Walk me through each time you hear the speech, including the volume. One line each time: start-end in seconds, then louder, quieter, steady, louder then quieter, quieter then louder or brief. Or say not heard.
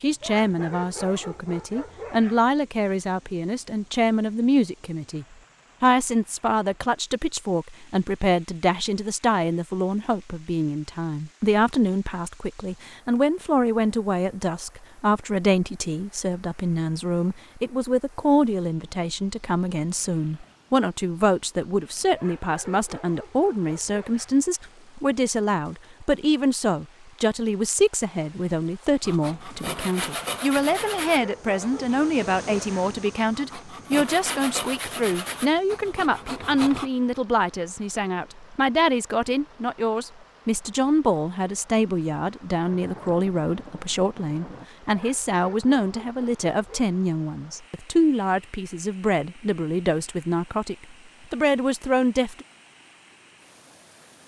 0.0-52.5 steady.